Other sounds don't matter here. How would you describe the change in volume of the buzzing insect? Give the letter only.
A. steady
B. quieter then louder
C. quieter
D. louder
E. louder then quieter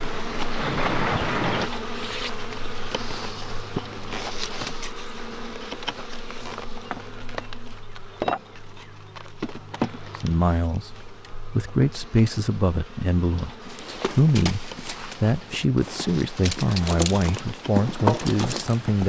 C.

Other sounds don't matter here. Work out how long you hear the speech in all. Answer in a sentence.
You can hear the speech for 9 seconds altogether.